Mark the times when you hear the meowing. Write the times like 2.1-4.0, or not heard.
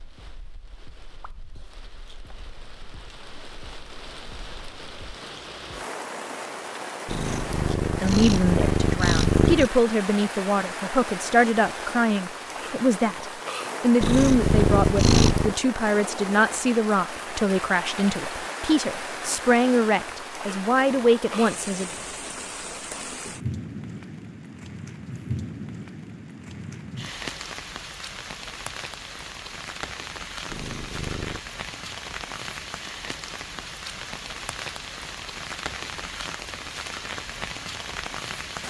7.0-9.7, 14.0-15.6, 30.4-31.4.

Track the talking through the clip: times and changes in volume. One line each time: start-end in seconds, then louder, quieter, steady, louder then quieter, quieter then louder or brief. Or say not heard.
8.0-21.9 steady.